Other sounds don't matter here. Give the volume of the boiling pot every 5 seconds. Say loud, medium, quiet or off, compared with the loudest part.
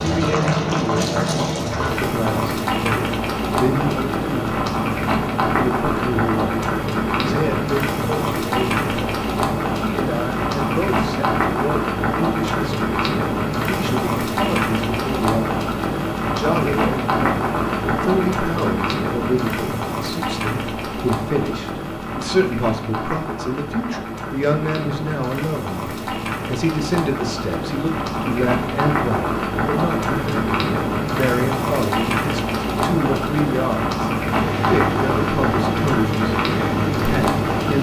loud, loud, loud, loud, medium, loud, loud, loud.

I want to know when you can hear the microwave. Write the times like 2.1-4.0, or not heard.
34.2-37.7.